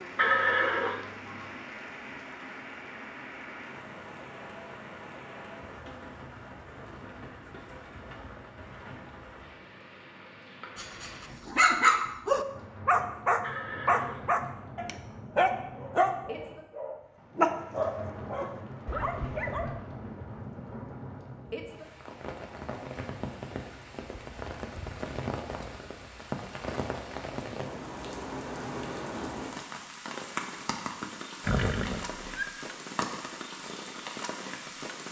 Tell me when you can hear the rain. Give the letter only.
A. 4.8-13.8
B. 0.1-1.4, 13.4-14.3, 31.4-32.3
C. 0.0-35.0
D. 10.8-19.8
C.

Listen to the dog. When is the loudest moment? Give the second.
12 s.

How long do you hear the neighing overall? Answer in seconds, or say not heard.
3 s.